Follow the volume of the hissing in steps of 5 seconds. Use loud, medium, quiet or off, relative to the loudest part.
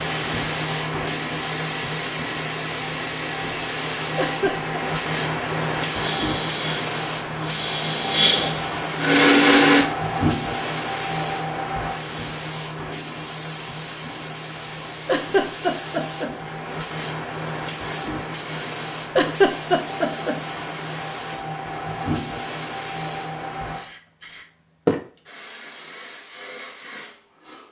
loud, loud, loud, medium, loud, quiet.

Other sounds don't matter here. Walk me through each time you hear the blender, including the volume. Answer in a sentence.
The blender can be heard from 0.0 to 9.8 s, getting louder.